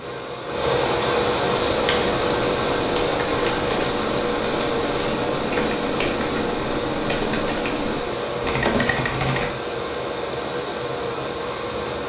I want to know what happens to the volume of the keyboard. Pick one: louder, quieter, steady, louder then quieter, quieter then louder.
louder.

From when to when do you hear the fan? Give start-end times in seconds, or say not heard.
0.0-12.0.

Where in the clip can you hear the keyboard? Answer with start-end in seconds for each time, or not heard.
1.6-9.5.